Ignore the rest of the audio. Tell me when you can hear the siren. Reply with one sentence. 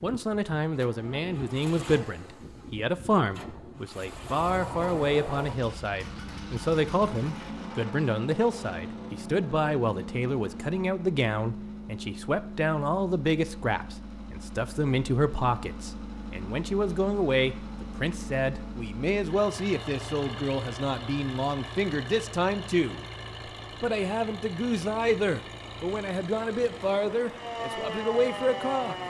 You can hear the siren from 27.3 to 29.0 s.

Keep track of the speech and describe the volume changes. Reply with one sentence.
The volume of the speech stays about the same.